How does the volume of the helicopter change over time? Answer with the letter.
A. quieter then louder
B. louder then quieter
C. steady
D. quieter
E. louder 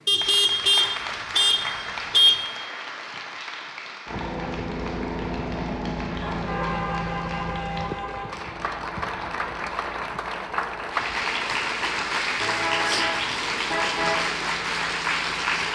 D.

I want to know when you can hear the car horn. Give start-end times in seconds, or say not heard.
0.1-2.4, 6.2-8.4, 12.3-14.2.